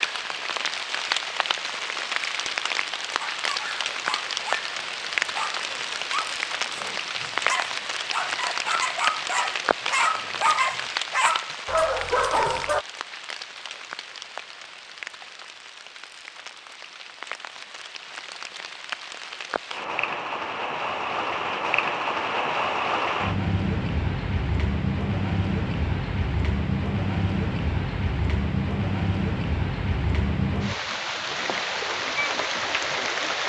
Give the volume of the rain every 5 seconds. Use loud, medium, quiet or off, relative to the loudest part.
loud, loud, medium, medium, loud, loud, loud.